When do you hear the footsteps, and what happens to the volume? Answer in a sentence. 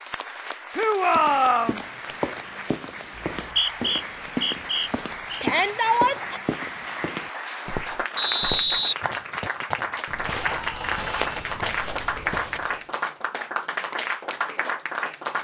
The footsteps can be heard from 1.1 to 12.8 s, at a steady volume.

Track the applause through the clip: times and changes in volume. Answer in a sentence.
The applause can be heard from 0.0 to 15.3 s, getting louder.